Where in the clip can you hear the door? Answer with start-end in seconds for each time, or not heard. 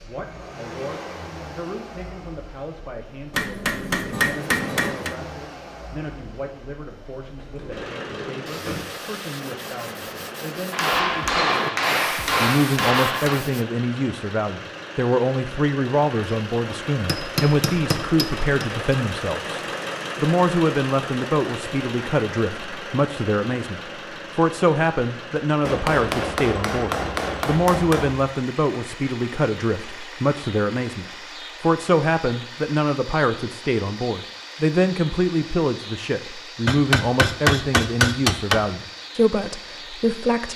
7.4-8.9.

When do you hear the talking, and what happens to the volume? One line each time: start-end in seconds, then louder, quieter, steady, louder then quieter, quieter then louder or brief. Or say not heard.
0.0-40.5 louder.